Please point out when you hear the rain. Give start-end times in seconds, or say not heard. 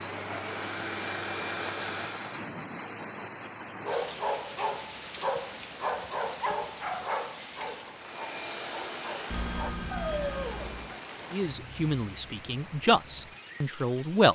0.0-14.3.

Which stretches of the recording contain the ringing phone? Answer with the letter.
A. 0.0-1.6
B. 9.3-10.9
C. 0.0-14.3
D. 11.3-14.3
B.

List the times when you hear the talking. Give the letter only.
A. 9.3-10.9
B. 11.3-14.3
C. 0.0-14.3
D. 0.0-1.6
B.